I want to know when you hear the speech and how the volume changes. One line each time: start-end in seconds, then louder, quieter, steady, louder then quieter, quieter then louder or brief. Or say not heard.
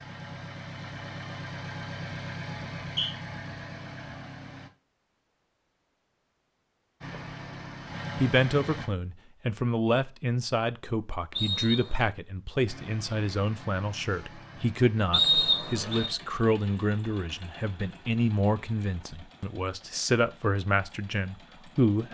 8.2-22.0 steady.